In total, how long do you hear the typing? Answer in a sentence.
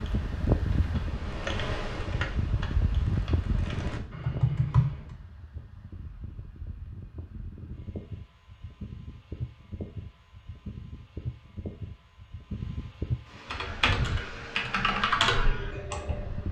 The typing can be heard for 8 seconds in total.